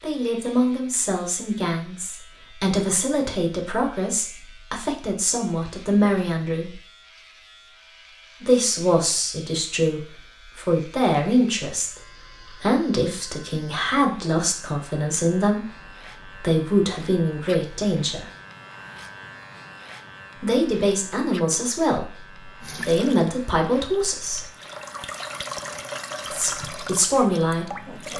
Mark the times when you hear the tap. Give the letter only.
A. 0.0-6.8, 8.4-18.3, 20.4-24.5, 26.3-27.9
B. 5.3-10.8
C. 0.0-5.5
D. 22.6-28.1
D.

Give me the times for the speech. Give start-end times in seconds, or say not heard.
0.0-6.8, 8.4-18.3, 20.4-24.5, 26.3-27.9.